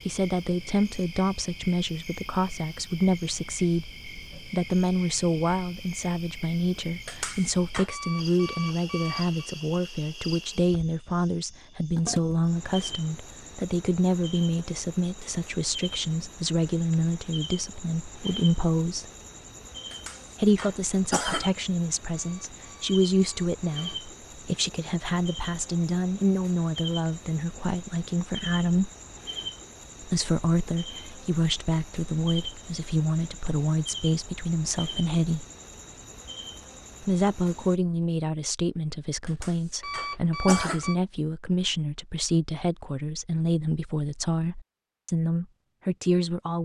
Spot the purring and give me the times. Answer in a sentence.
You can't hear the purring here.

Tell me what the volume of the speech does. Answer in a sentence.
The volume of the speech stays about the same.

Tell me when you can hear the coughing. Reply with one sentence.
You can hear the coughing from 7.0 to 7.9 s, from 19.9 to 21.5 s and from 39.2 to 40.9 s.